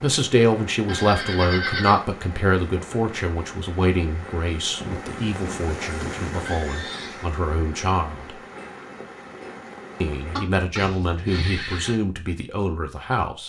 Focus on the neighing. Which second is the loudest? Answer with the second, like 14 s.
2 s.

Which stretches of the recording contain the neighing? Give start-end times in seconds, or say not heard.
0.8-2.0, 4.8-7.2, 10.3-11.9.